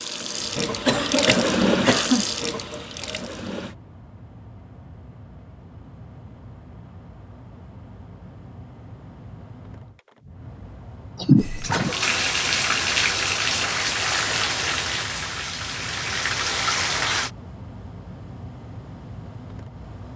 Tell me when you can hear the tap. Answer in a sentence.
The tap can be heard from 0.0 to 3.8 s and from 11.3 to 17.3 s.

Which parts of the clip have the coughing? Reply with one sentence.
The coughing can be heard from 0.6 to 2.2 s and from 11.2 to 11.9 s.